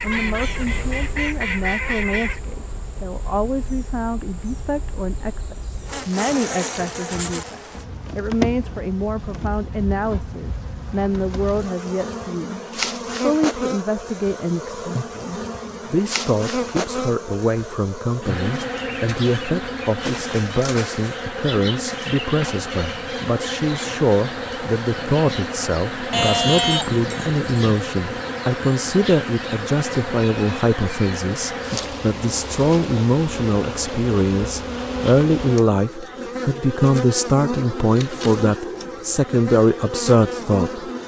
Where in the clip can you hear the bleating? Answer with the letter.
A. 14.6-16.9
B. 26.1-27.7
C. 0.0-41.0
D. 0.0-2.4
B.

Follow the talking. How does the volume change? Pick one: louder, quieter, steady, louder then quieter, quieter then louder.
louder.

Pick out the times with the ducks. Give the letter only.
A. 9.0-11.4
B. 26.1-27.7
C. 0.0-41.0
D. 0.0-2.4
D.